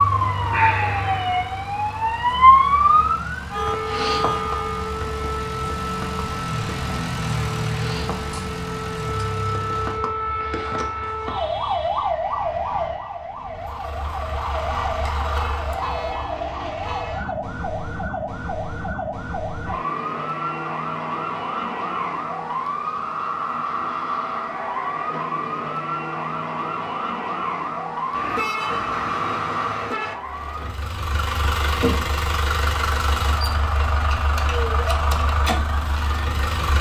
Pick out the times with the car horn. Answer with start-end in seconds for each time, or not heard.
3.5-5.0, 15.3-17.4, 28.1-30.1.